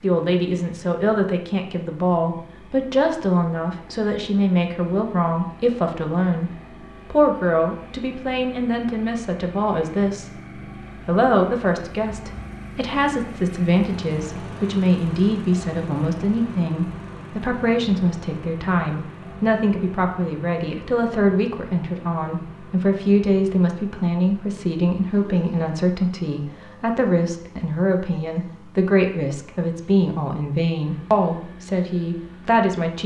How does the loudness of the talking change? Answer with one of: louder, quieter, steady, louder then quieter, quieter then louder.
steady.